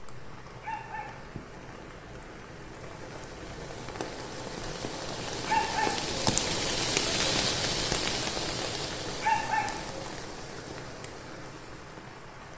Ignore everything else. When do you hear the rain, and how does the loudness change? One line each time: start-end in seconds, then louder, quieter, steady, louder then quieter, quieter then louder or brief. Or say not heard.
0.0-12.5 louder then quieter.